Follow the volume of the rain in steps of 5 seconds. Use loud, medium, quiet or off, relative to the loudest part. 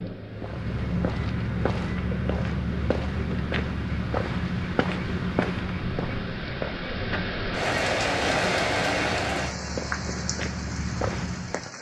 medium, loud, medium.